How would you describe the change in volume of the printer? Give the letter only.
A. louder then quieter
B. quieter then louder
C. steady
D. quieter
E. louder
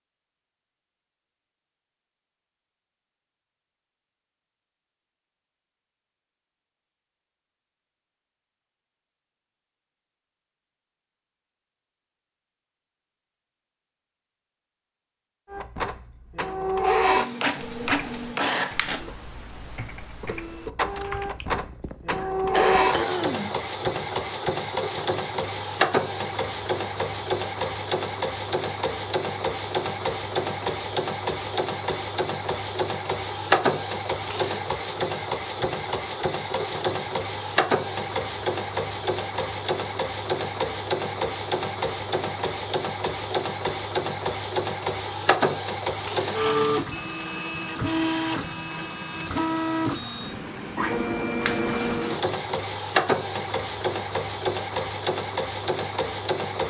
C.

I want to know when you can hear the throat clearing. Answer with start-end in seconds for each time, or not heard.
22.2-23.5.